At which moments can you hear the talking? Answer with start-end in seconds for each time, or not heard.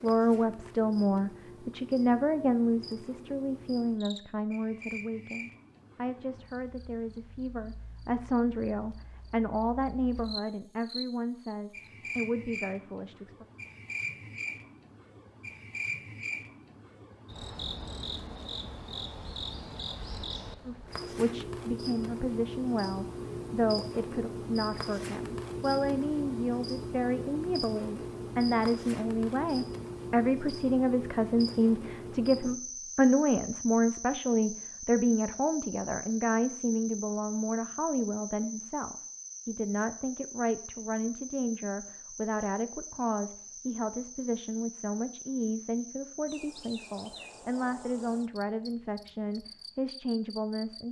0.0-13.4, 20.6-50.8.